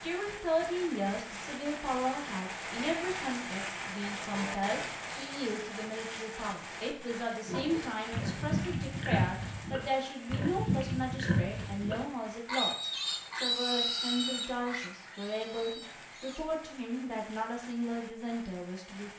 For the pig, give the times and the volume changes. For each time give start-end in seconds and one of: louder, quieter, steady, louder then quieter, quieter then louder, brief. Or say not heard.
7.5-16.4 quieter.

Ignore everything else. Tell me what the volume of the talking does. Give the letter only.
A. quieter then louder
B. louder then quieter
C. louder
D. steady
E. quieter
D.